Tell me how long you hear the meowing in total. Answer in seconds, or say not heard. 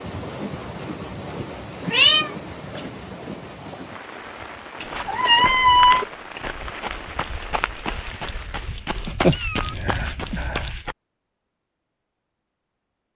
4 s.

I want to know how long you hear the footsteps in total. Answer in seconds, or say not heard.
6 s.